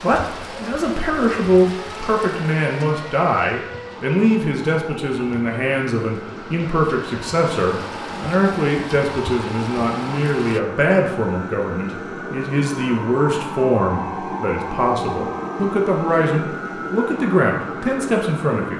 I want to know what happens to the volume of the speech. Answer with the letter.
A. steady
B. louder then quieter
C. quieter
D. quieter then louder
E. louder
A.